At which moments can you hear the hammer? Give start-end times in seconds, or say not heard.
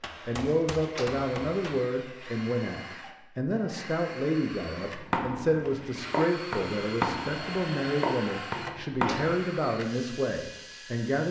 0.0-1.9, 4.8-9.4.